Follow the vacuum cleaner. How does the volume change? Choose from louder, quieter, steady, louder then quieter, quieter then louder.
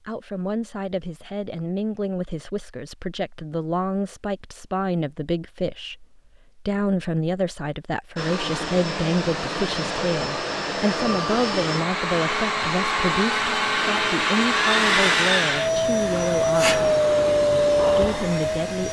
louder.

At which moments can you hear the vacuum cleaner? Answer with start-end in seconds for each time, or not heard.
8.2-18.8.